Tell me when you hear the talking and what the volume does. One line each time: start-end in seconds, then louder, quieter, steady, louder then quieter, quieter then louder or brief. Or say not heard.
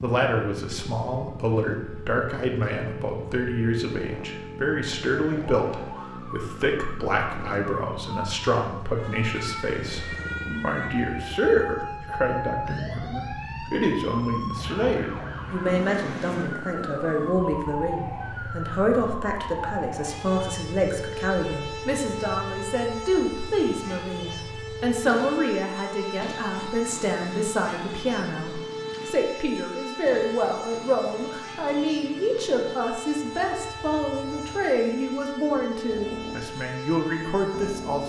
0.0-38.0 steady.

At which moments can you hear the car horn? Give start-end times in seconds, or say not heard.
not heard.